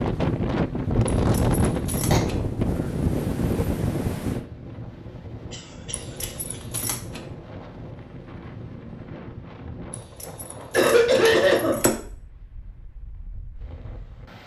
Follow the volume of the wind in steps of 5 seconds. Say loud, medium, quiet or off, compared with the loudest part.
loud, quiet, quiet.